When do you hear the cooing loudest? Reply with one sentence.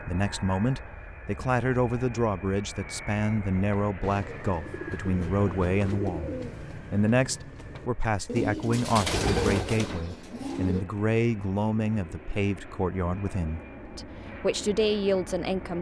The volume of the cooing peaks at 9 seconds.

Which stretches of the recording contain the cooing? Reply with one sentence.
The cooing can be heard from 3.7 to 10.8 s.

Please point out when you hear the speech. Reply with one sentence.
You can hear the speech from 0.0 to 15.7 s.